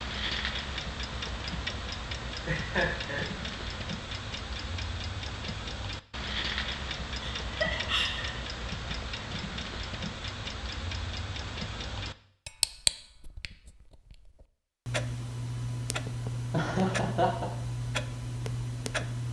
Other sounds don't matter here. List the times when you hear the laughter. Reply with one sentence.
You can hear the laughter from 2.5 to 3.8 s, from 7.2 to 8.4 s and from 16.5 to 17.5 s.